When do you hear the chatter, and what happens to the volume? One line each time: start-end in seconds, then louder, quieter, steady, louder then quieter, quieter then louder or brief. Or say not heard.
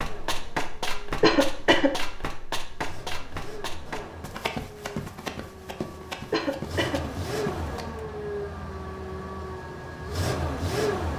not heard.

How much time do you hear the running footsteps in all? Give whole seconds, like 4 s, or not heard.
8 s.